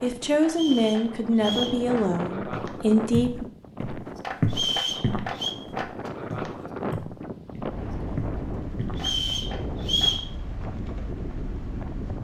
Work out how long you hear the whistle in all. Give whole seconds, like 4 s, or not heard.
4 s.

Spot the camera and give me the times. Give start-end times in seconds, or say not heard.
not heard.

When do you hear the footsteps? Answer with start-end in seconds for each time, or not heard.
2.5-9.1.